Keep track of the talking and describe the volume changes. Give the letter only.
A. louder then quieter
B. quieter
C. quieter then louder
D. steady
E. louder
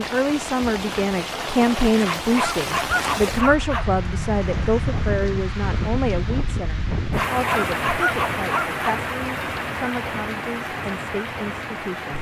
B.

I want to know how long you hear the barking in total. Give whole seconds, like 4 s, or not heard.
4 s.